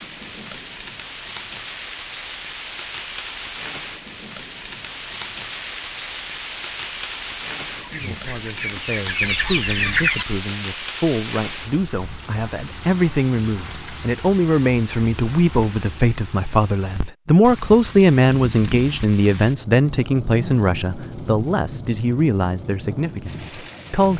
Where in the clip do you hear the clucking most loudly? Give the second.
10 s.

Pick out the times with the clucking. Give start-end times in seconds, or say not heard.
7.8-10.2.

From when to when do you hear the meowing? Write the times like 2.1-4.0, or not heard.
not heard.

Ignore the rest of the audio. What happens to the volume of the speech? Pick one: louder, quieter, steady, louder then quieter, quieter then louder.
louder then quieter.